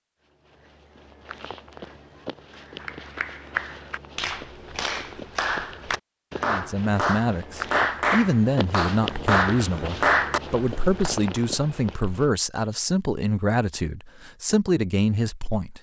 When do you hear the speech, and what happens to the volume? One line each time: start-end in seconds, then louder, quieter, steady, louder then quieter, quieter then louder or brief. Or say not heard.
6.4-15.7 steady.